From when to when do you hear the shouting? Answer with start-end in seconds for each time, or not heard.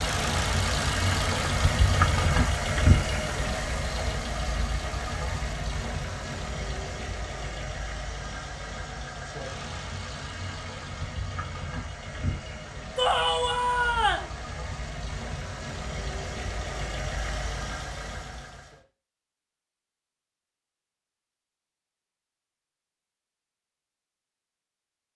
12.9-14.3.